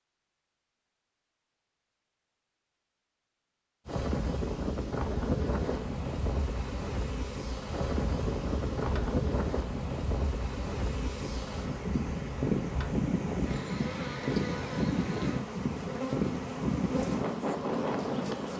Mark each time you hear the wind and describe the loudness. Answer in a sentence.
The wind can be heard from 3.9 to 18.5 s, at a steady volume.